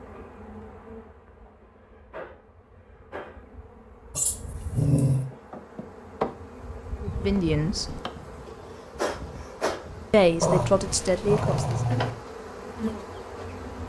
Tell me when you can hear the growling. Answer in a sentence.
The growling can be heard from 4.2 to 5.2 s and from 10.4 to 12.1 s.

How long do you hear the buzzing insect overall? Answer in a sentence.
The buzzing insect can be heard for 14 seconds in total.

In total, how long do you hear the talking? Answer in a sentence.
The talking can be heard for 3 seconds in total.